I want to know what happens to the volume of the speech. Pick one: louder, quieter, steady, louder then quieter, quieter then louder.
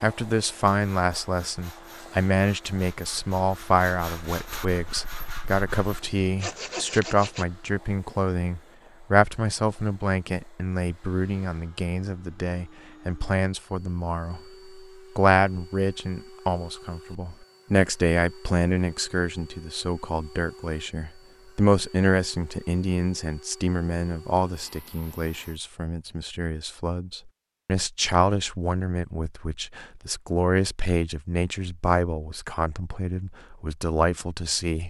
steady.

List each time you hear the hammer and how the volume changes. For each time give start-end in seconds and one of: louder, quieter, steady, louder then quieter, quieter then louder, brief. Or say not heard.
not heard.